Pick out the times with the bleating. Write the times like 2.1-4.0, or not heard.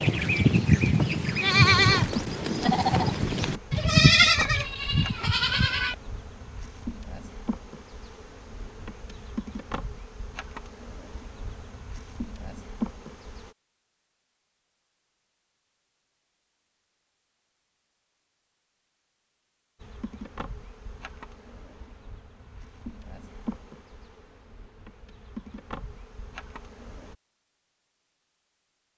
0.0-6.0.